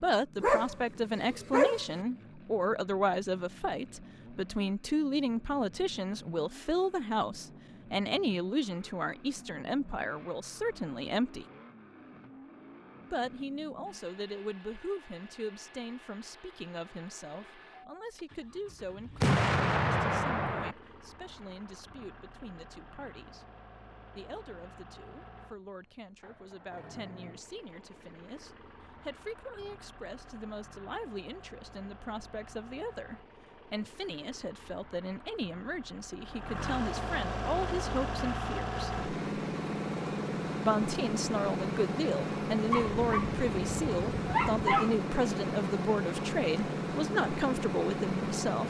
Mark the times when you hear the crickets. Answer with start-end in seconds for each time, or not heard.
not heard.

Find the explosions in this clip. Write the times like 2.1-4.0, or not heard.
19.2-20.8.